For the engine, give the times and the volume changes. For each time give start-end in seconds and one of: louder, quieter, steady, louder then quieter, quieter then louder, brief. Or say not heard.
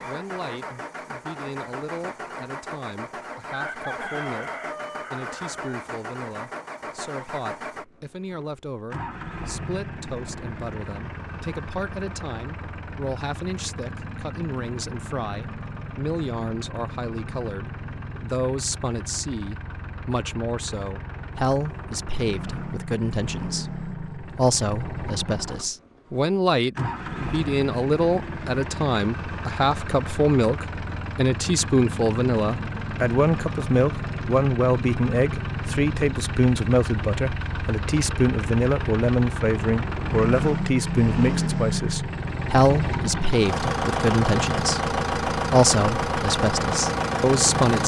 0.0-47.8 louder.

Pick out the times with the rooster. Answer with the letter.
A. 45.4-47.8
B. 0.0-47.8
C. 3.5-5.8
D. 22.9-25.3
C.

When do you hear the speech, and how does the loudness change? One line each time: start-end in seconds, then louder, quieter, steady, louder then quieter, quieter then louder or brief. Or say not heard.
0.0-47.8 louder.